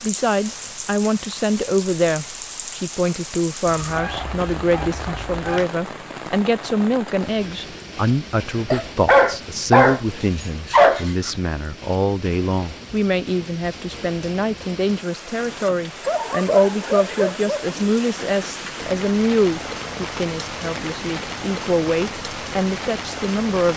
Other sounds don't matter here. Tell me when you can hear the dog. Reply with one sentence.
The dog can be heard from 3.6 to 5.7 s, from 8.7 to 11.3 s and from 16.1 to 17.8 s.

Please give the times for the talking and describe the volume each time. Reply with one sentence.
The talking can be heard from 0.0 to 23.7 s, at a steady volume.